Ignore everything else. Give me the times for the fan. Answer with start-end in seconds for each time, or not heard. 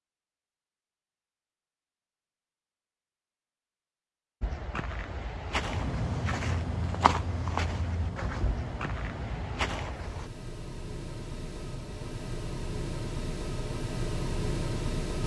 5.4-15.2.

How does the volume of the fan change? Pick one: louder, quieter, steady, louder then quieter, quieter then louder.
quieter then louder.